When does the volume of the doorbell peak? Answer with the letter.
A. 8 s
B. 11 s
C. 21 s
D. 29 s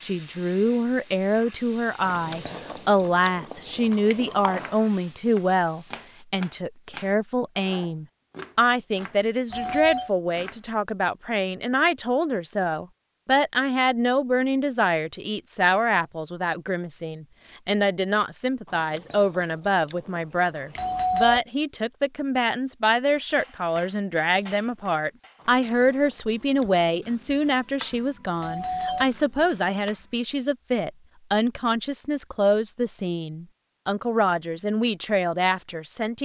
C.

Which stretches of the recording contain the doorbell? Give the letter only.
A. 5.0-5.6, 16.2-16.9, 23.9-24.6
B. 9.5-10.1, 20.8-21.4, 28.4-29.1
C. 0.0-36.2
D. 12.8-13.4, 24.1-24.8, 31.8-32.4
B.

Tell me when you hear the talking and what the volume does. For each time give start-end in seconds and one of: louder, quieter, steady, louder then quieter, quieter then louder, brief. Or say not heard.
0.0-36.2 steady.